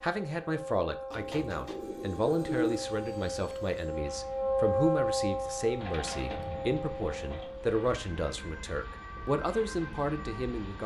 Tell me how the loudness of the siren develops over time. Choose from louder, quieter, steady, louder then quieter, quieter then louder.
louder then quieter.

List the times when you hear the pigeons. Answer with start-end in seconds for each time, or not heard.
1.1-2.8, 5.8-7.5.